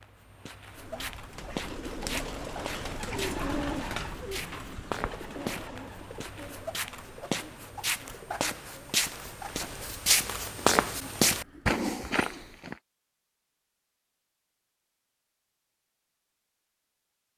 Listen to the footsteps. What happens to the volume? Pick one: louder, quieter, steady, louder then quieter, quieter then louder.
louder.